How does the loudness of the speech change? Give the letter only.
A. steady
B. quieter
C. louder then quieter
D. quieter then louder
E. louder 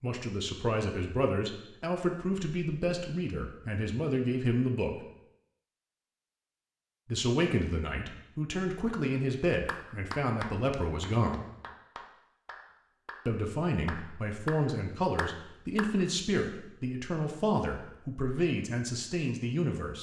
A.